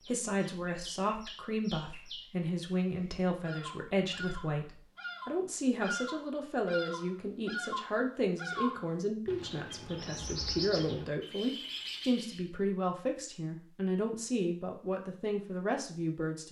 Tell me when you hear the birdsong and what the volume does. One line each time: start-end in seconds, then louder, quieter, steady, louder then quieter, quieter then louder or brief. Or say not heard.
0.0-12.4 louder.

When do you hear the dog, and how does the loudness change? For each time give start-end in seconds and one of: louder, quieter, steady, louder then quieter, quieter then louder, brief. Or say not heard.
not heard.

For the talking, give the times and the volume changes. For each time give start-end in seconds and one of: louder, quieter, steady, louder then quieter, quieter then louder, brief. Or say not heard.
0.1-16.4 steady.